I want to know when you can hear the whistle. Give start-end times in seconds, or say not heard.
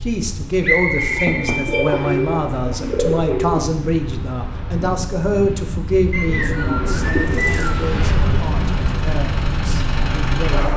0.6-2.2, 6.1-7.9.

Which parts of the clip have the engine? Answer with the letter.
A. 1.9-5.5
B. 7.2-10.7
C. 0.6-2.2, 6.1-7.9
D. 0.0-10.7
B.